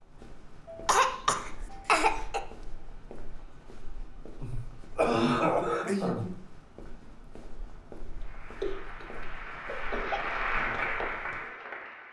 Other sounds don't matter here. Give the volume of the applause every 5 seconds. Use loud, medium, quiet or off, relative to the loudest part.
off, medium, loud.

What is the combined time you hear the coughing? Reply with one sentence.
The coughing can be heard for 5 seconds in total.